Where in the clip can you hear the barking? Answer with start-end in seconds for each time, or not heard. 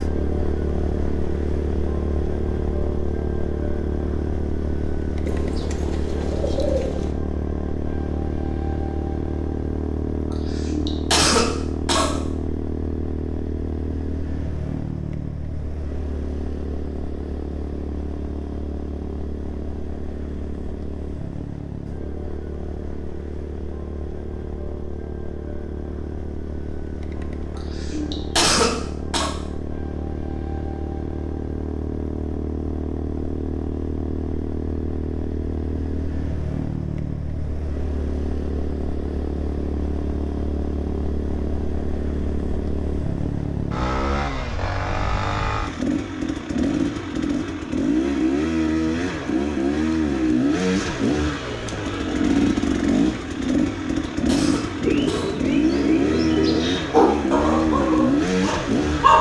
56.9-59.1.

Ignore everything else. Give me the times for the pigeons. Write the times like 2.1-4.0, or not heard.
5.2-7.2, 54.8-56.9.